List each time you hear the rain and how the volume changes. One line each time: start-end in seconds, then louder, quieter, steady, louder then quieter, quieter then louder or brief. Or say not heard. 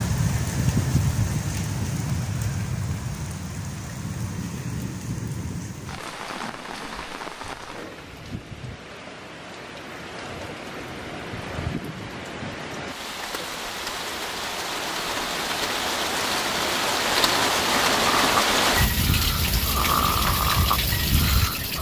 0.0-21.7 quieter then louder.